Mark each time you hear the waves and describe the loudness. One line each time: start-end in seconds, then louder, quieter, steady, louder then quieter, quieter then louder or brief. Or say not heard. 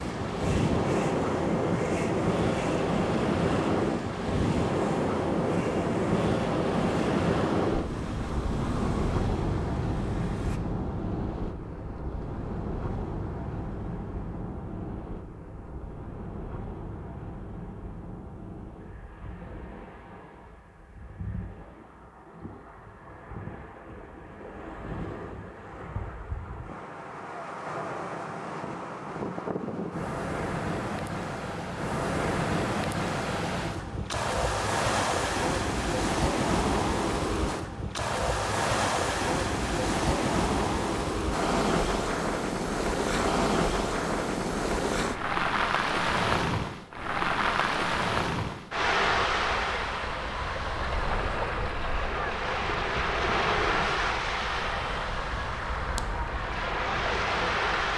0.0-57.9 quieter then louder.